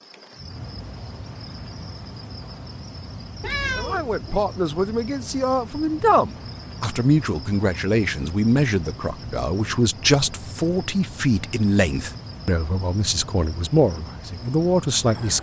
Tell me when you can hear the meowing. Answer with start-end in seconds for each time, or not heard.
3.4-4.4.